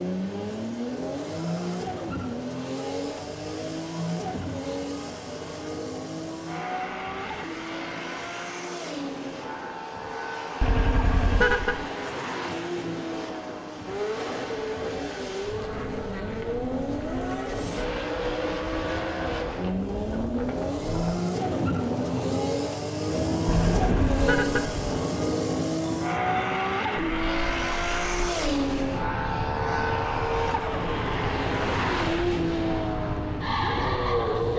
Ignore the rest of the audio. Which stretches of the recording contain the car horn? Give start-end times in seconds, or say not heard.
10.6-11.8, 23.4-24.8.